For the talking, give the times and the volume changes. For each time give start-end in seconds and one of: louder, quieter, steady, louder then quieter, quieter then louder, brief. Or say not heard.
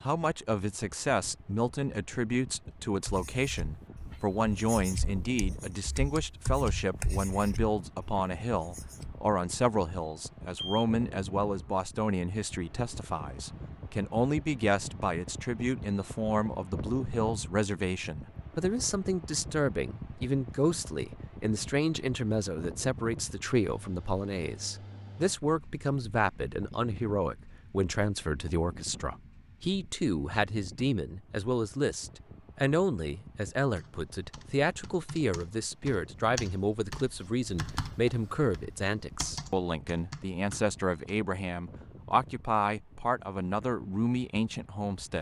0.0-45.1 steady.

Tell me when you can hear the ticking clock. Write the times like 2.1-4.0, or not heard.
not heard.